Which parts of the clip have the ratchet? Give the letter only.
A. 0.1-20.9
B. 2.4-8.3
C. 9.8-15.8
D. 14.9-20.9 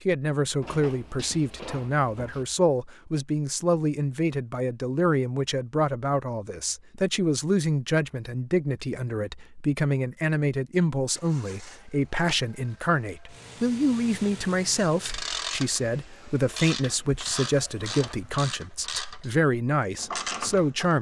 D.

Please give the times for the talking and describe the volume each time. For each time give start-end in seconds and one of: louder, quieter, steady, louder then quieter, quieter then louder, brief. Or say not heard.
0.1-20.9 steady.